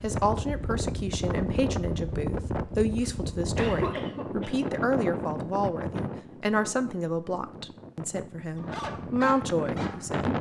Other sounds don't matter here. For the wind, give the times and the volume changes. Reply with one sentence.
You can hear the wind from 0.0 to 10.3 s, getting quieter then louder.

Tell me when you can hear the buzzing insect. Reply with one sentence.
You can't hear the buzzing insect here.